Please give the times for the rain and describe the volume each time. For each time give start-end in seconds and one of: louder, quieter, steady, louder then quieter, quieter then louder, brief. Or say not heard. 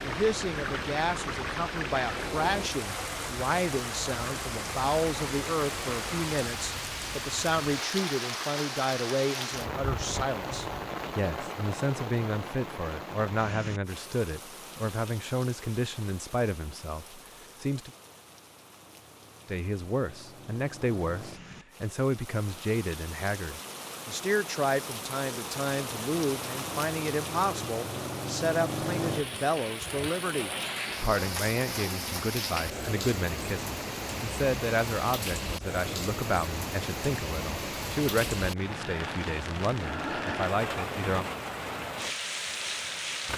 0.0-43.3 quieter then louder.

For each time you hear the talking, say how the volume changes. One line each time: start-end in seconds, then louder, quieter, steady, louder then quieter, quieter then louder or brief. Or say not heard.
0.0-17.9 steady
19.4-41.3 steady.